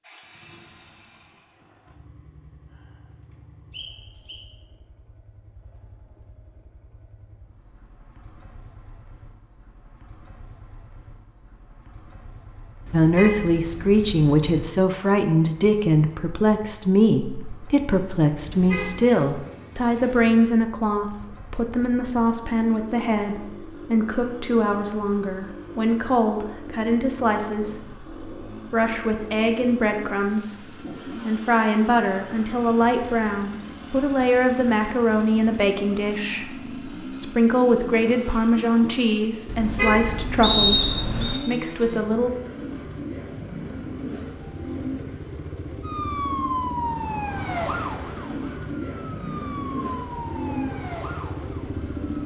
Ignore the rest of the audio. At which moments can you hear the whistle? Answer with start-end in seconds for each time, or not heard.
3.7-4.4, 40.4-41.4.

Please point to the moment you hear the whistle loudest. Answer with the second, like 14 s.
41 s.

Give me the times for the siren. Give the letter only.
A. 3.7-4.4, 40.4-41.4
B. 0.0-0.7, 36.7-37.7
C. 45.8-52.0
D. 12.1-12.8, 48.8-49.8
C.